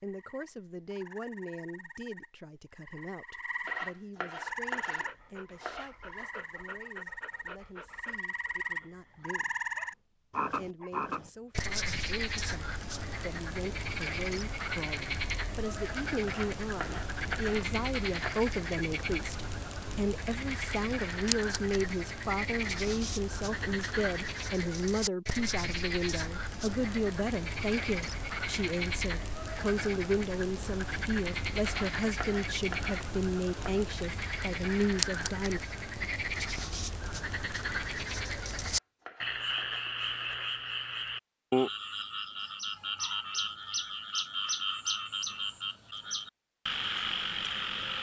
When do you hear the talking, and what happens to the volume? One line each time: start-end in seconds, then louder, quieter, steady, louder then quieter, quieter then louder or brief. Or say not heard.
0.0-9.8 quieter
10.5-35.6 louder.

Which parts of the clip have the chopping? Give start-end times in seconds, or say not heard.
3.6-6.2, 16.2-18.4, 31.6-33.9, 38.8-40.0.